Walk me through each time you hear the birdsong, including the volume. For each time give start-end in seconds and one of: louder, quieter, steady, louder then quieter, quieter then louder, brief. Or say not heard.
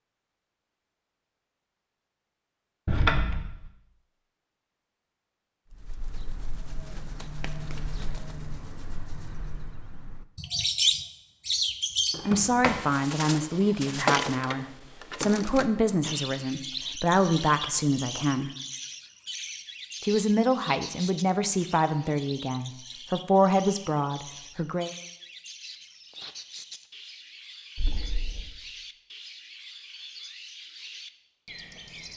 5.7-32.1 quieter.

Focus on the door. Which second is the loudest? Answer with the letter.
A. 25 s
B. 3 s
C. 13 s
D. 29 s
B.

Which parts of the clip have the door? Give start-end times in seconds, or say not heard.
2.9-3.7, 12.2-12.8, 27.8-28.5.